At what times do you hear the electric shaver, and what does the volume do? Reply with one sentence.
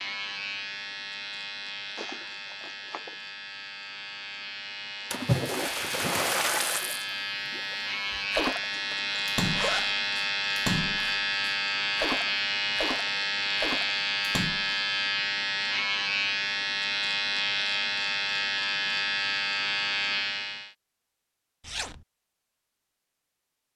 You can hear the electric shaver from 0.0 to 20.8 s, getting louder.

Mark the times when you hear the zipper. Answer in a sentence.
You can hear the zipper from 1.9 to 3.1 s, from 8.7 to 10.0 s and from 21.6 to 22.1 s.